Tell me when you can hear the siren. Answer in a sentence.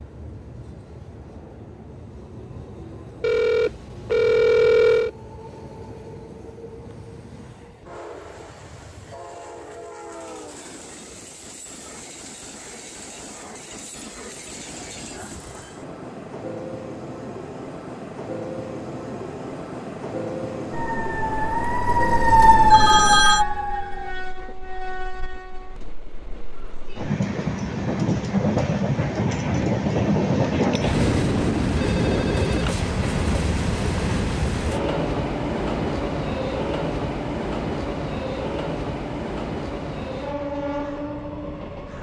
You can hear the siren from 20.7 to 24.1 s.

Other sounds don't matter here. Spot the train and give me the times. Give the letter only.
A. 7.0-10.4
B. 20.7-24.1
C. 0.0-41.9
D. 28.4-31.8
C.